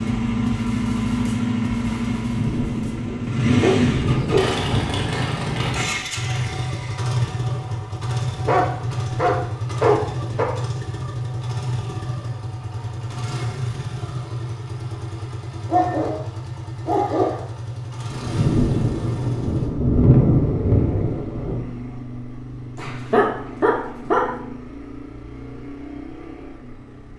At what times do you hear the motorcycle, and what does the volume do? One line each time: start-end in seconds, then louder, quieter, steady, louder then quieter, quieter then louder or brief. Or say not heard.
0.0-27.1 quieter.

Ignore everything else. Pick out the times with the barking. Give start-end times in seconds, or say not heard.
3.0-4.6, 8.4-10.4, 15.7-17.4, 22.8-24.4.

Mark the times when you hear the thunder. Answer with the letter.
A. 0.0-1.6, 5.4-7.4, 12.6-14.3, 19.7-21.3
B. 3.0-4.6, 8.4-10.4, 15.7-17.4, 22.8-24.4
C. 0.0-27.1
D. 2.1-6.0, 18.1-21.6
D.